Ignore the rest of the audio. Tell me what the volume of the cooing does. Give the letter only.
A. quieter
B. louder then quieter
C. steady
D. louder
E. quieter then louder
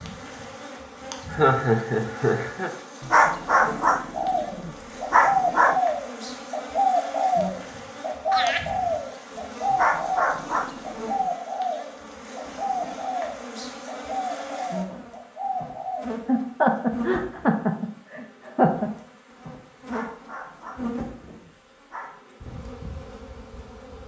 A.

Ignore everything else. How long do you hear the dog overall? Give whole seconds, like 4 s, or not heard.
7 s.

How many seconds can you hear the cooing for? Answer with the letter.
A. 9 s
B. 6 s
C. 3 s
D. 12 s
D.